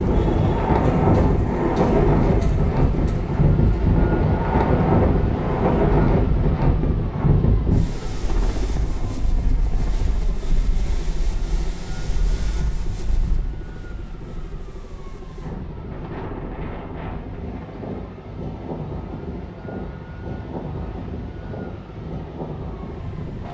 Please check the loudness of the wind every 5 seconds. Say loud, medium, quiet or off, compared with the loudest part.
loud, loud, quiet, quiet, quiet.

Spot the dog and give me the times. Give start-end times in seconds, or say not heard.
not heard.